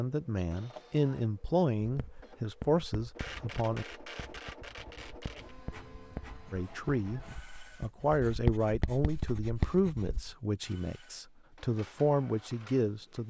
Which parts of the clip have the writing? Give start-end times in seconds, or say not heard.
1.9-10.3.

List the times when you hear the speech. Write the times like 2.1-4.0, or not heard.
0.0-3.9, 6.5-13.2.